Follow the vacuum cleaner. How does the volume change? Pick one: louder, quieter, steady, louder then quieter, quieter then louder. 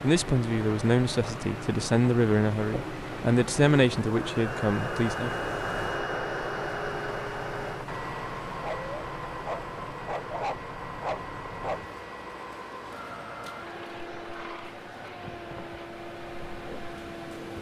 louder then quieter.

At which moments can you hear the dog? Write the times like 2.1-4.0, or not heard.
8.4-11.8.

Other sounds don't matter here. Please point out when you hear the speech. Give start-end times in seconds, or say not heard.
0.0-5.4.